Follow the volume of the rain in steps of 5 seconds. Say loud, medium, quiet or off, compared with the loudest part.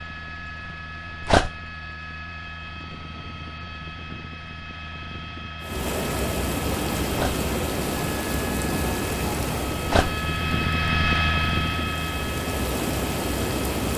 off, loud, loud.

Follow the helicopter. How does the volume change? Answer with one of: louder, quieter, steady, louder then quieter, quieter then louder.
louder.